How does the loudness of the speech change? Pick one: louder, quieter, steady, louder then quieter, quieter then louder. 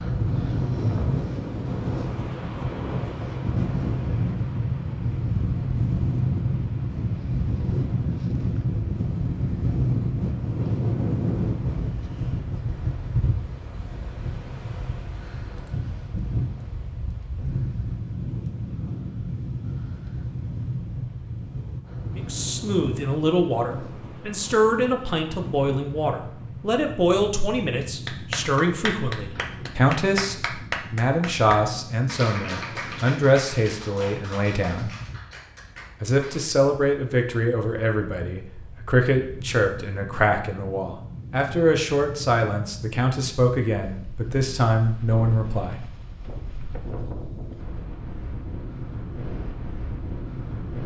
steady.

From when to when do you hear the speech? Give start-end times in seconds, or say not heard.
22.1-34.9, 36.0-45.9.